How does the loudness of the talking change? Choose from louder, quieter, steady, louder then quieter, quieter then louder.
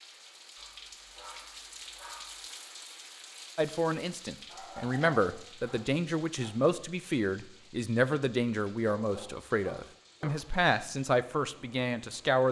steady.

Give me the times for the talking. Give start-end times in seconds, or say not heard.
3.5-12.4.